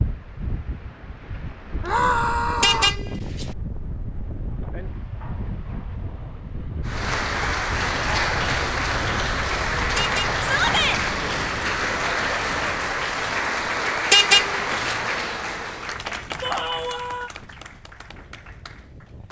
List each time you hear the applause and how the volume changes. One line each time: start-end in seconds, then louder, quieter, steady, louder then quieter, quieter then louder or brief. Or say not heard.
6.8-19.2 quieter.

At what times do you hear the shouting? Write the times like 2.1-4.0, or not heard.
1.8-3.0, 10.4-11.0, 16.4-17.3.